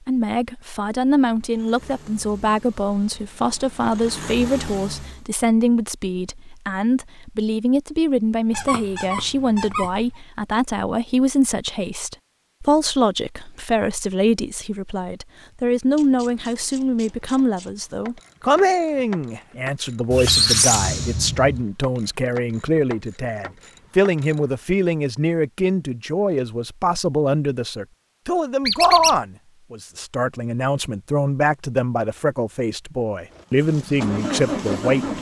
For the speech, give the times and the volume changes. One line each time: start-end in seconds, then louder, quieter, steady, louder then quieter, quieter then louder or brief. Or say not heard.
0.1-35.1 steady.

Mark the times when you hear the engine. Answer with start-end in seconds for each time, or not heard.
1.4-5.2, 33.3-35.1.